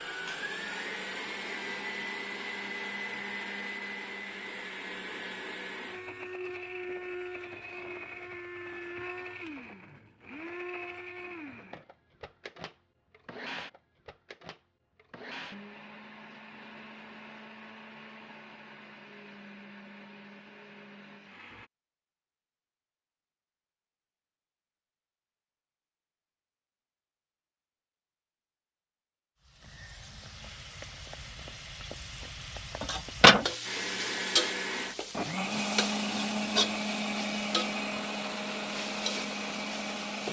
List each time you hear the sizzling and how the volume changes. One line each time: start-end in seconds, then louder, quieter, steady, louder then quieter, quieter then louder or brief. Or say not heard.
29.6-40.2 louder then quieter.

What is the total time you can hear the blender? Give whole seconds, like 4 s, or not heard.
28 s.